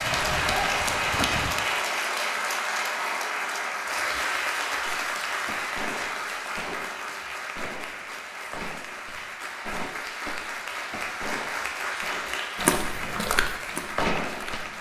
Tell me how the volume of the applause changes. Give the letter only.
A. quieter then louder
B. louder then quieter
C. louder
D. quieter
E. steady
D.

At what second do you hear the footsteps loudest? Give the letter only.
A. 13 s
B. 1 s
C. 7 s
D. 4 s
A.